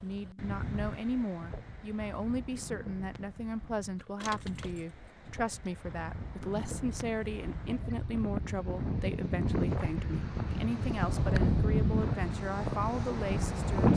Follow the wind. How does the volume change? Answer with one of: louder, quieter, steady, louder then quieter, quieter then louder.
quieter then louder.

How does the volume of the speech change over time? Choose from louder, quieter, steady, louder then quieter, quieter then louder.
steady.